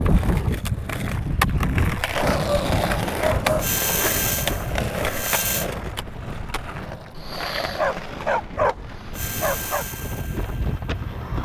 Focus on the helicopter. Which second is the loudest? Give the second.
4 s.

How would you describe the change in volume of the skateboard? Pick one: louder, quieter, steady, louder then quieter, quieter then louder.
quieter.